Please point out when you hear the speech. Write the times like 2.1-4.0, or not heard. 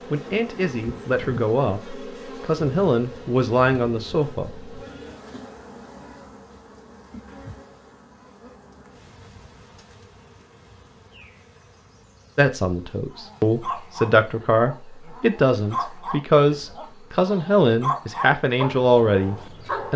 0.1-4.7, 12.3-19.9.